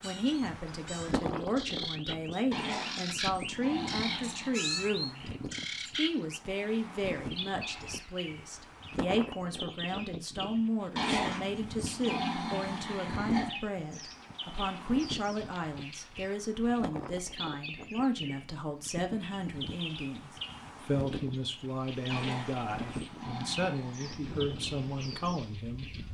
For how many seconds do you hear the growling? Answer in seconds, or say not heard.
7 s.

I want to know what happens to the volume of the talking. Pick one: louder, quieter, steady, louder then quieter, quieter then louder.
steady.